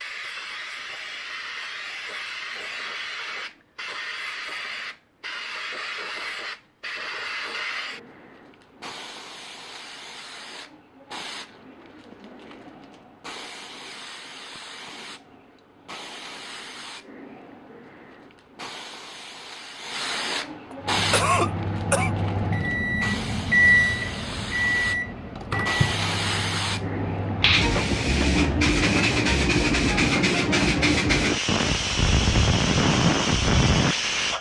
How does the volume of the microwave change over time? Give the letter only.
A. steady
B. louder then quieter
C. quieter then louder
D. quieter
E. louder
B.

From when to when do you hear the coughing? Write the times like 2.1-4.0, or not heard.
20.7-22.1.